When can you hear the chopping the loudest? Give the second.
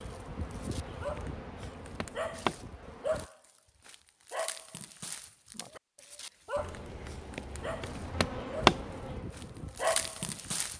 9 s.